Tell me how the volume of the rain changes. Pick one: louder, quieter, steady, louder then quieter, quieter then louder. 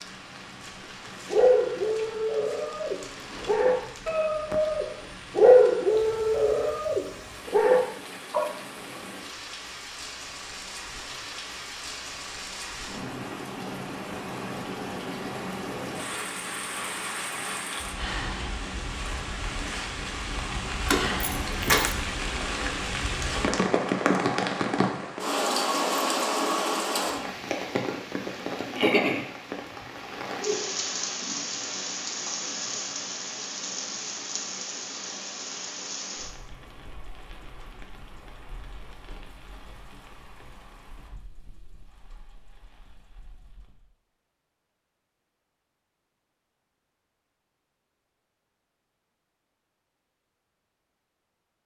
louder then quieter.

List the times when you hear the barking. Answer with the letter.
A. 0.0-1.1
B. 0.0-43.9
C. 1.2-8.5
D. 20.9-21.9
C.